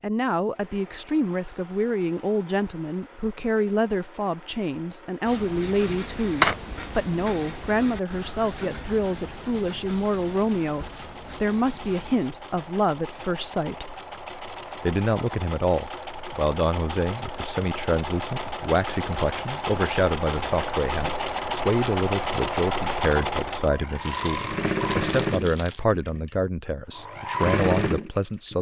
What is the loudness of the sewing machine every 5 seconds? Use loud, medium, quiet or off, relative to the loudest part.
quiet, quiet, quiet, medium, loud, loud.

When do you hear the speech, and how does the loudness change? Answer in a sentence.
You can hear the speech from 0.0 to 13.9 s, at a steady volume; and from 14.8 to 28.5 s, at a steady volume.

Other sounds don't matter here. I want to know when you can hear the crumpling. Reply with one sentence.
The crumpling can be heard from 6.4 to 6.8 s and from 24.1 to 25.8 s.